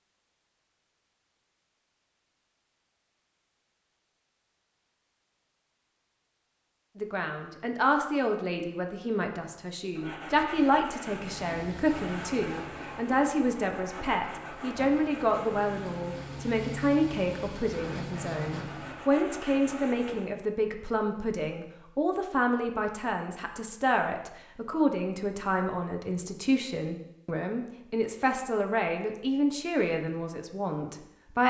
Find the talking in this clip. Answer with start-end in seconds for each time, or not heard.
7.0-31.4.